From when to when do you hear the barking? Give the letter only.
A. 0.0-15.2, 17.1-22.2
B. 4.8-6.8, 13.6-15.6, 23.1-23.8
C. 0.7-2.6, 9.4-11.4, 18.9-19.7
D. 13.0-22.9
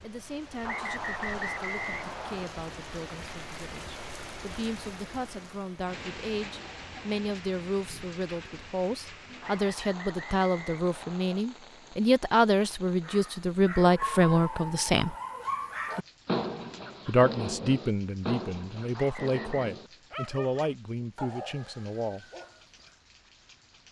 D.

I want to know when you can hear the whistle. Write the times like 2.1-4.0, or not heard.
0.7-2.6, 9.4-11.4, 18.9-19.7.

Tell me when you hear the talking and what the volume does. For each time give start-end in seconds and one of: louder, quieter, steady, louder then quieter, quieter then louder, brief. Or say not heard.
0.0-15.2 louder
17.1-22.2 quieter.